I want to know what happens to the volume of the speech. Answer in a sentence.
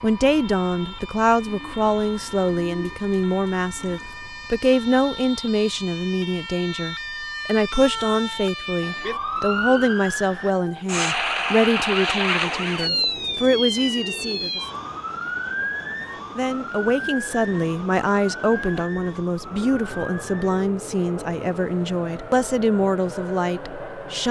The loudness of the speech stays about the same.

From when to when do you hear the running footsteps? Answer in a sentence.
You can't hear the running footsteps here.